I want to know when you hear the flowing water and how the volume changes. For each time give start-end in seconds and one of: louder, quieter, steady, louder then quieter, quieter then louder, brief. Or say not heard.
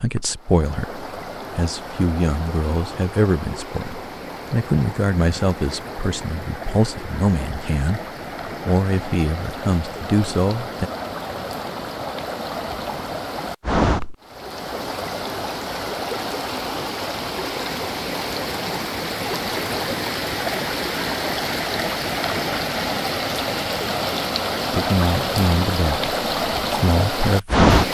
0.0-27.9 louder.